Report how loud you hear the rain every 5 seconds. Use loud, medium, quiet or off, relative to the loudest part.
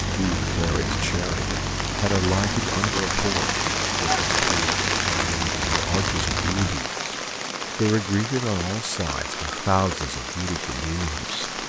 loud, loud, medium.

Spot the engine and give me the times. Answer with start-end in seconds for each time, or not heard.
0.0-6.8.